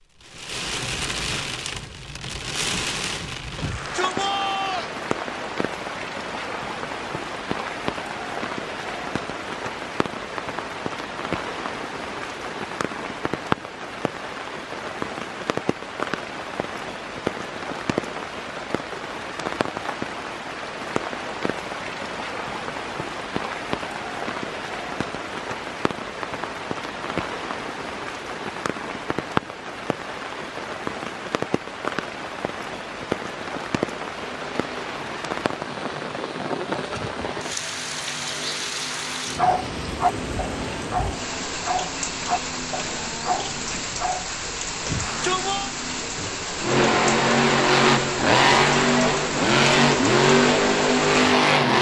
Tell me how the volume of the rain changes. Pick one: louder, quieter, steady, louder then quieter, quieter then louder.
steady.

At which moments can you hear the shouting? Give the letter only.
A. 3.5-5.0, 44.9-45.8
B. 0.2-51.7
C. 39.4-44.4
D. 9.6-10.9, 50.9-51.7
A.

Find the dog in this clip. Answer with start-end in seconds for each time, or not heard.
39.4-44.4.